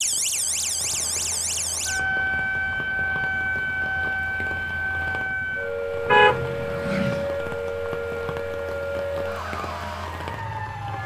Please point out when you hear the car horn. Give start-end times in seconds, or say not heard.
6.0-7.3.